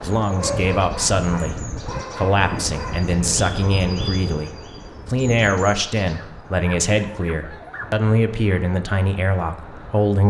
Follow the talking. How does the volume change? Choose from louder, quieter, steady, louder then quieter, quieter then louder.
steady.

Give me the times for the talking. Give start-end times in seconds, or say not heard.
0.0-10.2.